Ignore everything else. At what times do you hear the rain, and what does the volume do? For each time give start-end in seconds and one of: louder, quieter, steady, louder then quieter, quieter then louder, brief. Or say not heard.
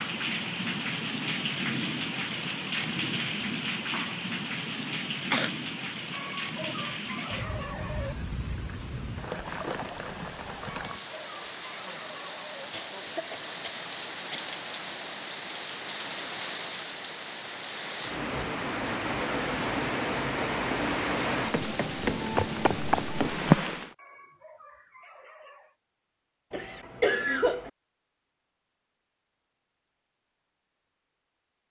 0.0-23.9 quieter then louder.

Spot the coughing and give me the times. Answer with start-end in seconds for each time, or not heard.
3.9-5.5, 12.7-14.5, 26.5-27.7.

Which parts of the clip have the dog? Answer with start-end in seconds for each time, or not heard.
6.1-8.2, 10.7-12.6, 23.9-25.8.